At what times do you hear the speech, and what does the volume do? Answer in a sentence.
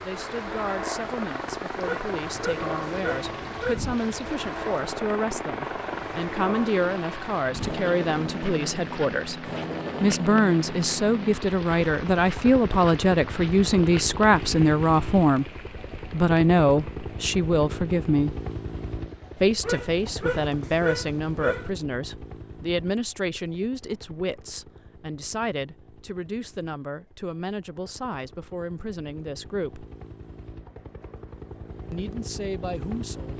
You can hear the speech from 0.0 to 15.5 s, getting louder; briefly from 16.1 to 18.4 s; from 19.4 to 29.9 s, getting quieter; and briefly from 31.9 to 33.3 s.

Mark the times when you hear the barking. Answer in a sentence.
You can hear the barking from 1.8 to 3.9 s and from 19.6 to 21.7 s.